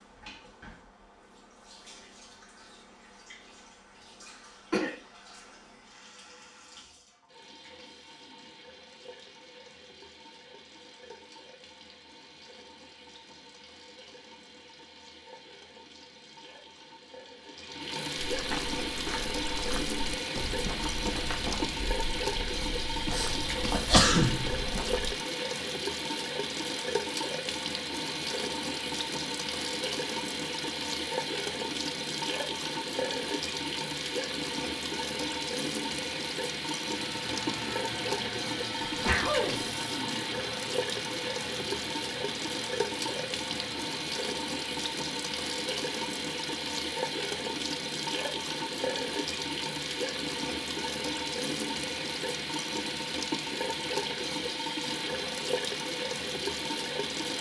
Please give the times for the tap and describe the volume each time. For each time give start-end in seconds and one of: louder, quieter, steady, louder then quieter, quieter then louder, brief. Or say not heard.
0.0-57.3 louder.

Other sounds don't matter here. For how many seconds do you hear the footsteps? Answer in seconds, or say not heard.
7 s.